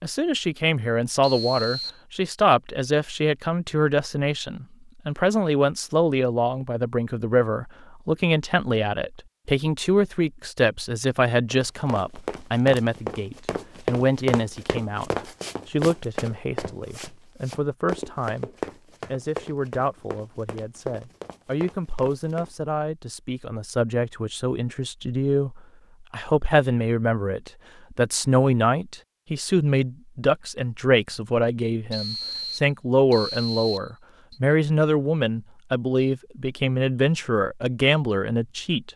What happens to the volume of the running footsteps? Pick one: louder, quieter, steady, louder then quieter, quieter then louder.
quieter.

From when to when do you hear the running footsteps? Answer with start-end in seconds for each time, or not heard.
11.5-22.6.